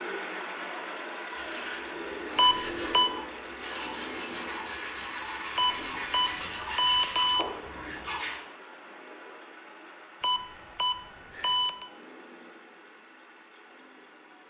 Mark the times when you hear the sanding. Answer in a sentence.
You can hear the sanding from 1.3 to 8.4 s.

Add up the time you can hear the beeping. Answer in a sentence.
The beeping can be heard for 5 seconds in total.